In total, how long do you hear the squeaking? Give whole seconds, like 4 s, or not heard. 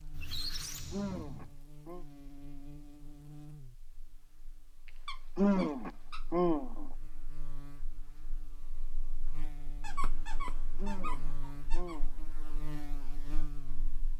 5 s.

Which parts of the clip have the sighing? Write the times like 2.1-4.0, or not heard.
0.9-2.0, 5.3-6.9, 10.8-12.3.